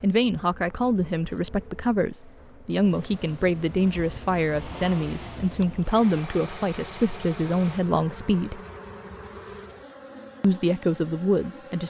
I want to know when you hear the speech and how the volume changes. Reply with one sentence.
The speech can be heard from 0.0 to 8.6 s, at a steady volume; and briefly from 10.4 to 11.8 s.